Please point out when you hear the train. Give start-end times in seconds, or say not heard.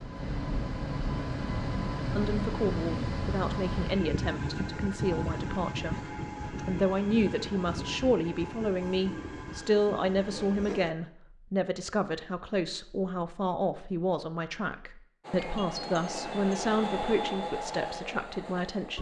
0.0-10.9, 15.2-18.9.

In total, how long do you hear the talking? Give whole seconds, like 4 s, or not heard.
17 s.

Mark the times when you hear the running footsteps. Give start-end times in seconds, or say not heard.
not heard.